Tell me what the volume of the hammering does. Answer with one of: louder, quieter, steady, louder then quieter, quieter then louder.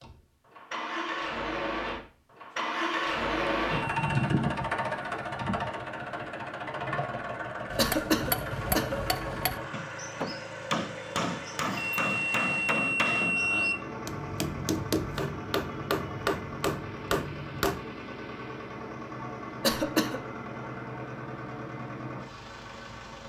steady.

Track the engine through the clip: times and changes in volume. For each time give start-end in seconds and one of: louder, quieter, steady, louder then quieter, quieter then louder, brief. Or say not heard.
0.0-23.2 quieter.